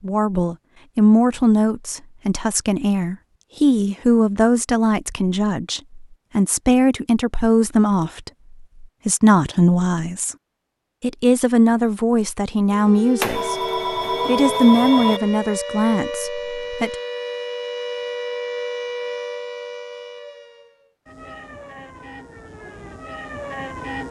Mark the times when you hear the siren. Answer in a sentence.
The siren can be heard from 12.7 to 24.0 s.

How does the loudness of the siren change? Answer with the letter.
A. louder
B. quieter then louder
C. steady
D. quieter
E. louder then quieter
D.